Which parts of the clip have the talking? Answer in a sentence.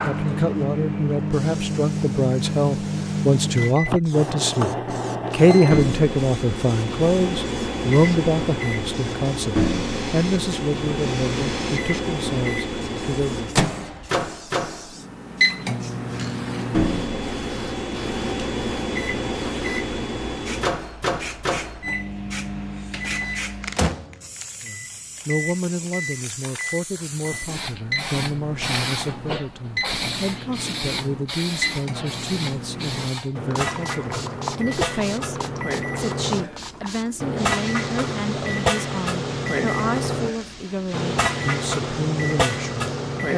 You can hear the talking from 0.0 to 13.6 s and from 24.6 to 43.3 s.